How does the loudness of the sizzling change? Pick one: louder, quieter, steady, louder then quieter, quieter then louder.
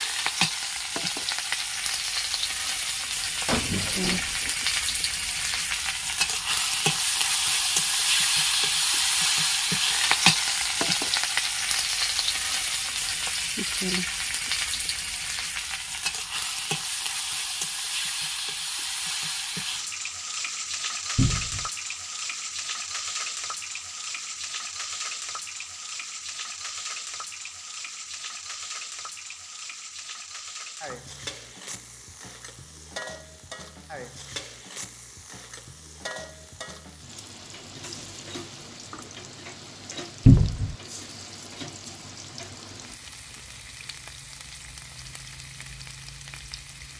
quieter.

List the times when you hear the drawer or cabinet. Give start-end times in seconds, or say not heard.
3.5-4.5, 21.1-21.6, 40.2-40.8.